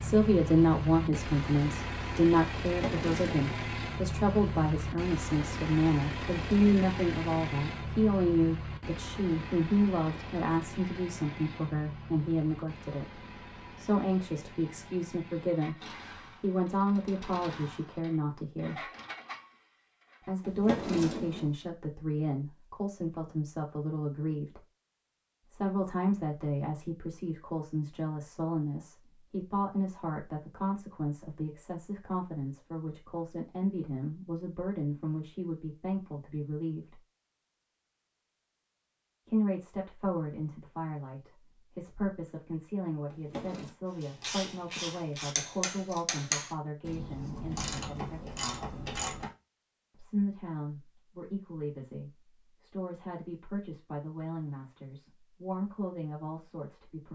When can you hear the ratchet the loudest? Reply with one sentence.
The volume of the ratchet peaks at 46 seconds.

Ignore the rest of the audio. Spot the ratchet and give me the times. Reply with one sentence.
You can hear the ratchet from 44.0 to 49.3 s.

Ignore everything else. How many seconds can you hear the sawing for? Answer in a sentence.
The sawing can't be heard in this clip.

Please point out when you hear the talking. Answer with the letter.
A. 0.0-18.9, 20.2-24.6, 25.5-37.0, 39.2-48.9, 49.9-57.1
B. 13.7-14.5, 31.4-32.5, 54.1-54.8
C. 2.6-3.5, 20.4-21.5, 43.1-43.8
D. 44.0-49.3
A.